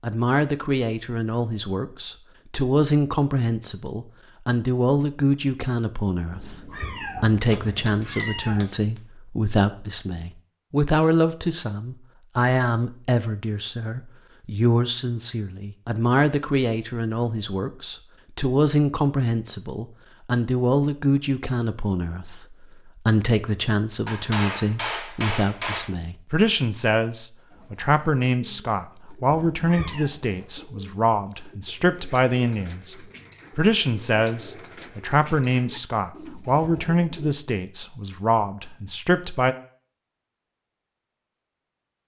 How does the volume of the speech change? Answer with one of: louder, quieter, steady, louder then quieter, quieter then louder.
steady.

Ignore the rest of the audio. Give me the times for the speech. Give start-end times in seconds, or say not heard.
0.0-33.0, 33.5-39.5.